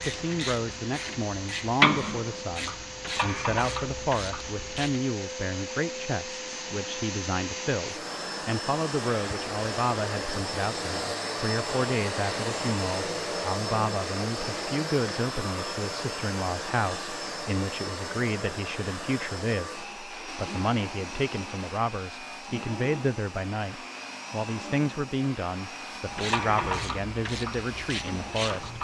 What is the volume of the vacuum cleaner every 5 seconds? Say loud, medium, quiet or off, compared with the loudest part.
medium, loud, loud, loud, medium, medium.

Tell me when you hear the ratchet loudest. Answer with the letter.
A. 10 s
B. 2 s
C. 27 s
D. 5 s
B.